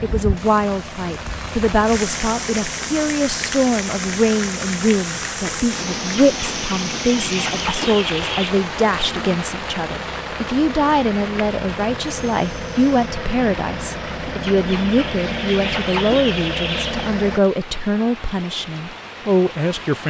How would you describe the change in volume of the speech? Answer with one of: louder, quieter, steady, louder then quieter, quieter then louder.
steady.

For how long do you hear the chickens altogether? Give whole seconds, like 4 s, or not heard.
5 s.